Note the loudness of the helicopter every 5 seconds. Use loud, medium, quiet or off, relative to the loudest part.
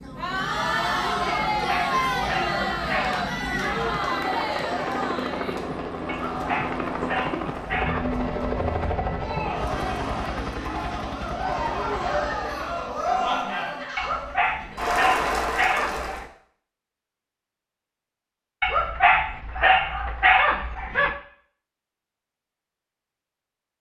medium, loud, medium, off, off.